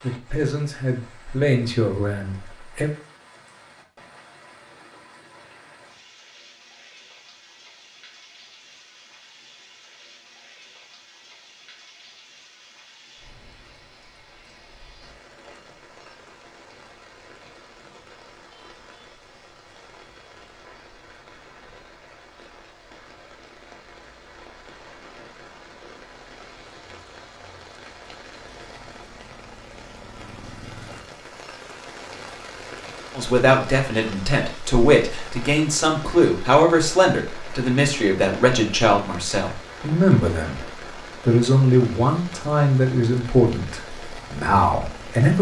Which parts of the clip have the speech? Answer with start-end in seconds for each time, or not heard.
0.0-2.9, 33.1-40.6, 41.2-45.3.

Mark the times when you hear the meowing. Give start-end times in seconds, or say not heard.
not heard.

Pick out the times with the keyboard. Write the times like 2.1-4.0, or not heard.
not heard.